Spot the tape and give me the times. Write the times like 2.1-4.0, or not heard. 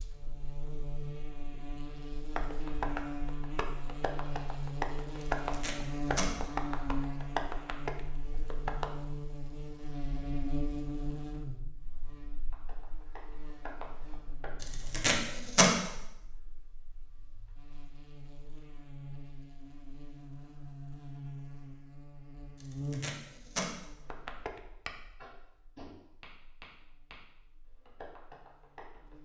5.2-6.3, 14.6-15.7, 22.6-23.7.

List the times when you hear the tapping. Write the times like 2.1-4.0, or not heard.
2.4-8.9, 12.5-14.5, 24.1-27.2, 27.9-29.1.